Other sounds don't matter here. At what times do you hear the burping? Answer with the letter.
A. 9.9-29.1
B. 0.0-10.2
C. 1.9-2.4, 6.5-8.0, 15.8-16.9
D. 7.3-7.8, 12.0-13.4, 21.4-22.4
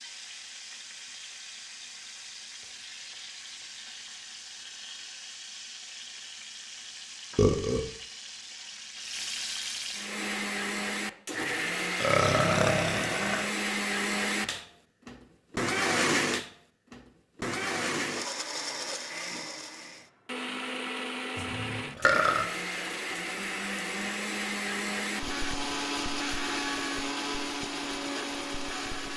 D.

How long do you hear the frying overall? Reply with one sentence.
The frying can be heard for 10 seconds in total.